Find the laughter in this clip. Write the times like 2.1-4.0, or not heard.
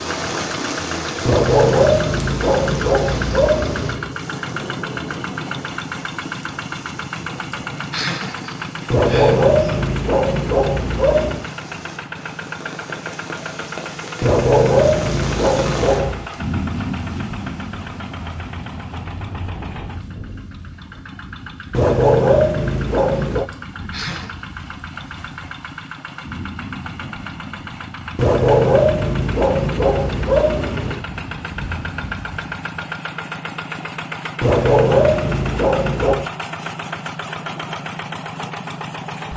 7.5-9.6, 23.5-24.4.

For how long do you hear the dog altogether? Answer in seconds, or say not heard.
14 s.